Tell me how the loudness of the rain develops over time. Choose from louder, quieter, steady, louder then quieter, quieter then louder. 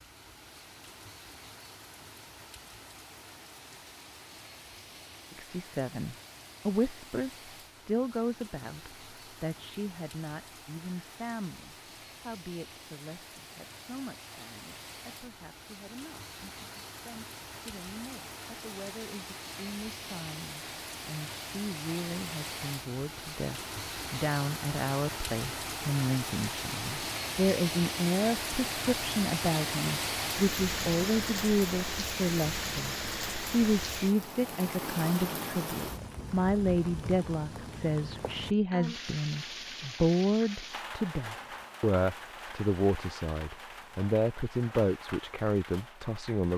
louder then quieter.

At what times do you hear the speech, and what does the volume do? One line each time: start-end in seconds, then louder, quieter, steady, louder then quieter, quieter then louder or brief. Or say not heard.
5.3-46.5 quieter then louder.